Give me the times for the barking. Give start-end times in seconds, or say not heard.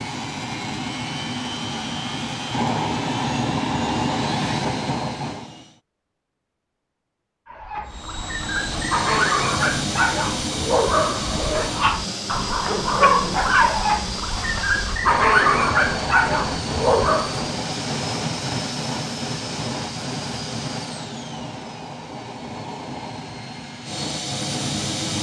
7.5-17.5.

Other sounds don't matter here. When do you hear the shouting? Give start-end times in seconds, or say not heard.
not heard.